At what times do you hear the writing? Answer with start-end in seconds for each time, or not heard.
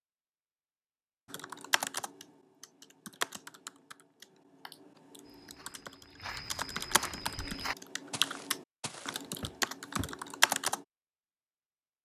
not heard.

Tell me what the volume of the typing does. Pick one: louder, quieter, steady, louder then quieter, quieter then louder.
quieter then louder.